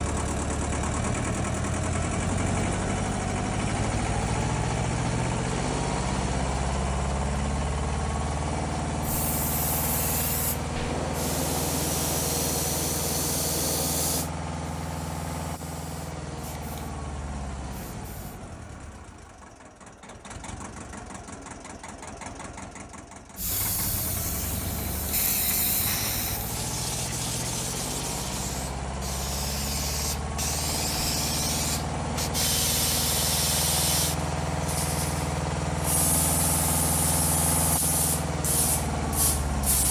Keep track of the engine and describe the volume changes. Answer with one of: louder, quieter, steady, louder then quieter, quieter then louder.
quieter then louder.